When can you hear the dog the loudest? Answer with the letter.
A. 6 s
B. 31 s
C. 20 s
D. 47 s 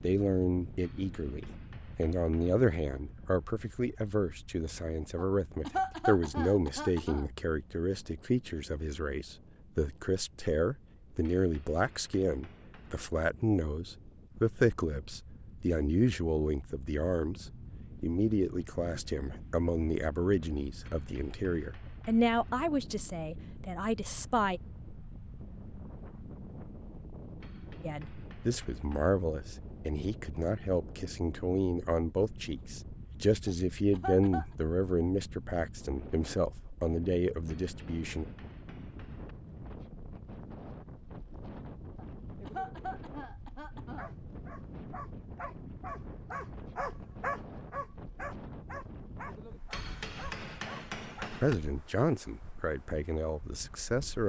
D.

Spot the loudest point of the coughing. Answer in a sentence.
The loudest moment of the coughing is at 6 seconds.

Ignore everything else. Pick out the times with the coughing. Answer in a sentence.
You can hear the coughing from 5.2 to 7.2 s, from 33.5 to 34.5 s and from 42.0 to 44.1 s.